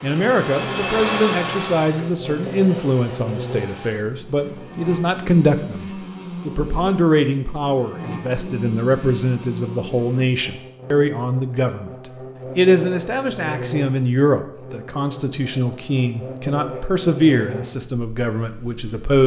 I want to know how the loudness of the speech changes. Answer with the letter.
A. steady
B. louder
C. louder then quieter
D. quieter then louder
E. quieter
A.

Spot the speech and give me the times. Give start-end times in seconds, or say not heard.
0.0-11.9, 12.6-19.2.